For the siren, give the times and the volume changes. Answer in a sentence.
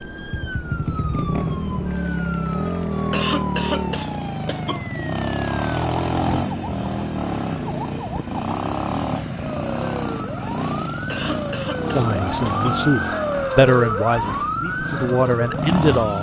The siren can be heard from 0.0 to 16.1 s, getting louder.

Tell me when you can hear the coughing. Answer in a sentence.
The coughing can be heard from 3.1 to 4.8 s and from 11.1 to 12.8 s.